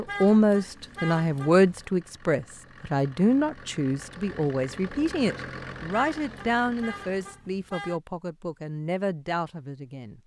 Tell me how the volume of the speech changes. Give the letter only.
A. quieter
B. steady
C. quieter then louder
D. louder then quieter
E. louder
A.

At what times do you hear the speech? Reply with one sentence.
The speech can be heard from 0.0 to 10.2 s.